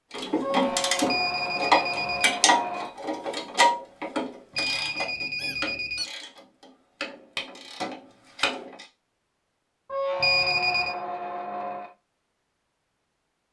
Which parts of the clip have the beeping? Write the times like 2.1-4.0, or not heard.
1.1-2.4, 4.5-6.1, 10.2-10.9.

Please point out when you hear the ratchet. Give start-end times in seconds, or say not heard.
0.1-8.8.